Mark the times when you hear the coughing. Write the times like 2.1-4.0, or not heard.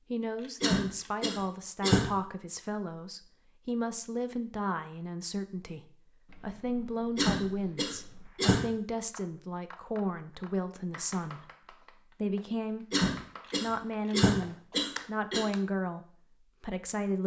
0.6-2.0, 7.2-8.6, 12.9-15.4.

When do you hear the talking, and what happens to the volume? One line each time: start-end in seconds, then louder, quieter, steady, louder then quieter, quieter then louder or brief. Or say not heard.
0.1-17.2 steady.